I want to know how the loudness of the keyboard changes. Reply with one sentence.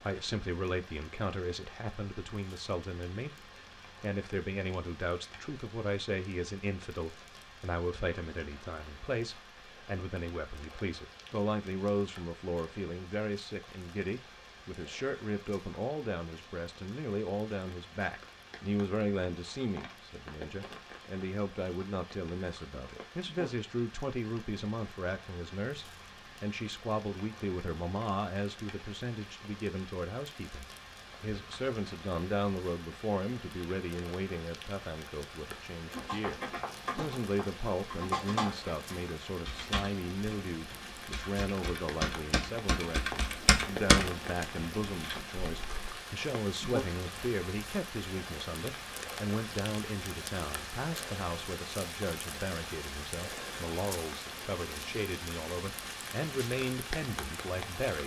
The volume of the keyboard goes down, then up.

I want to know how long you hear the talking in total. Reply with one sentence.
You can hear the talking for 58 seconds altogether.